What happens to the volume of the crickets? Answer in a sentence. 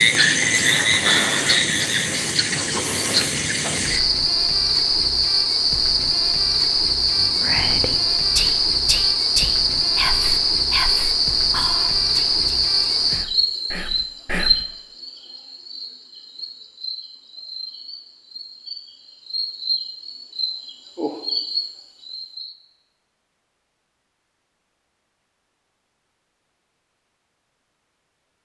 The volume of the crickets goes down.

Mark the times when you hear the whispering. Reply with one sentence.
The whispering can be heard from 7.1 to 14.7 s.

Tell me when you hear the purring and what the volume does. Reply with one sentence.
The purring can't be heard in this clip.